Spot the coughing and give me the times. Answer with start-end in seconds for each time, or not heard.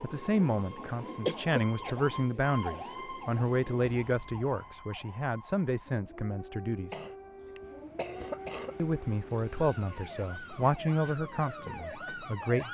1.2-1.9, 6.9-8.8.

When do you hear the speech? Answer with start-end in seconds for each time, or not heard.
0.0-7.0, 8.8-12.7.